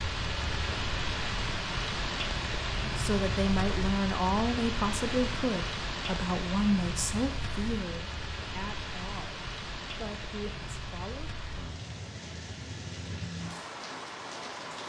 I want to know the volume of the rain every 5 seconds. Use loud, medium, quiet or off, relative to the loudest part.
loud, loud, medium.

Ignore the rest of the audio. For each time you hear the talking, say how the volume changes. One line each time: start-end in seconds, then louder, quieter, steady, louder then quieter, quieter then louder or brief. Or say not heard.
2.8-11.4 quieter.